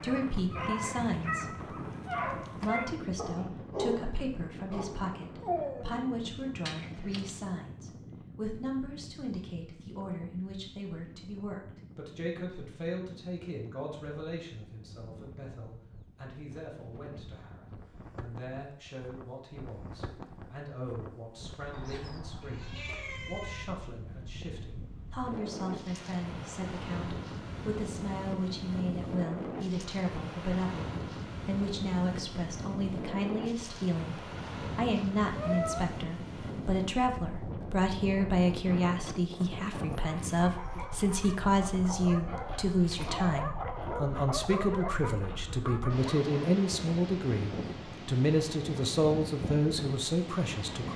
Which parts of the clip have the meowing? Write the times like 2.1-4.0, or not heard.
6.7-7.4, 21.7-23.6, 35.4-35.9.